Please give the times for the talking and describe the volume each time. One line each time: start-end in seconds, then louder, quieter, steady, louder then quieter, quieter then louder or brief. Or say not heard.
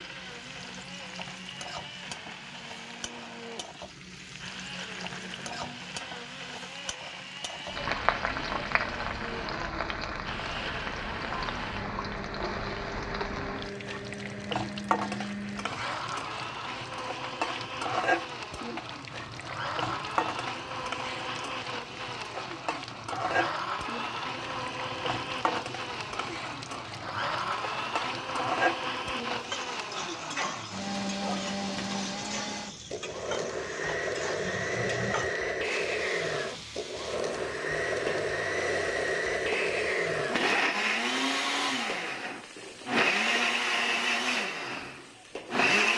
not heard.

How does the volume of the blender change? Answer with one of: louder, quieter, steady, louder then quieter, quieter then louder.
louder.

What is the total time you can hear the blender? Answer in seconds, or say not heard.
46 s.